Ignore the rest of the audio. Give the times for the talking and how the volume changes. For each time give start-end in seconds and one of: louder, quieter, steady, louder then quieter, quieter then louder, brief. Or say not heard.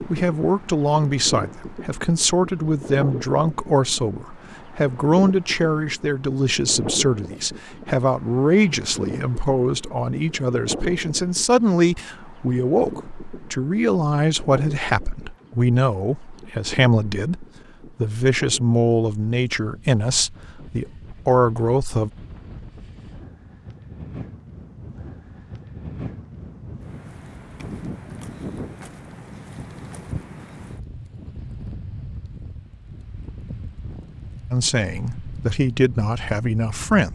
0.0-22.1 steady
34.5-37.1 brief.